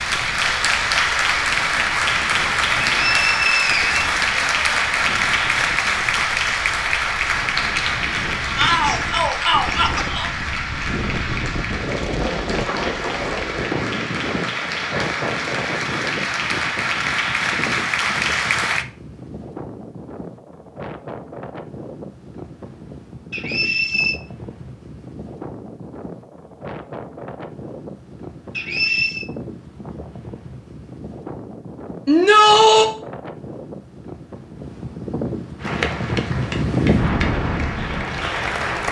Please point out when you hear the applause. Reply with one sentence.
You can hear the applause from 0.0 to 18.9 s and from 35.6 to 38.8 s.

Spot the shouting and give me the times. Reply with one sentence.
You can hear the shouting from 8.6 to 10.3 s and from 32.0 to 32.9 s.